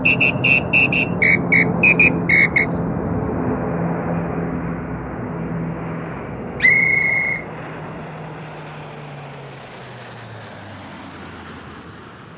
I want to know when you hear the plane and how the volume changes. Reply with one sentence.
The plane can be heard from 0.0 to 12.3 s, getting quieter.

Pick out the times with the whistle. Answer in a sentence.
You can hear the whistle from 0.1 to 2.6 s and from 6.6 to 7.5 s.